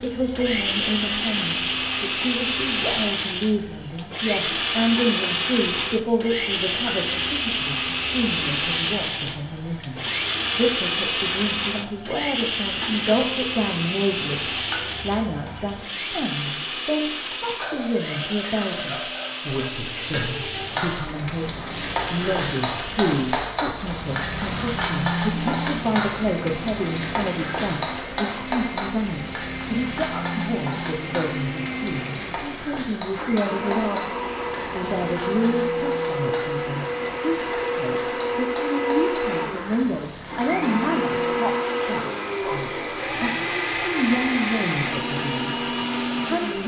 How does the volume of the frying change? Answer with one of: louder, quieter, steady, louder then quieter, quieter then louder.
louder then quieter.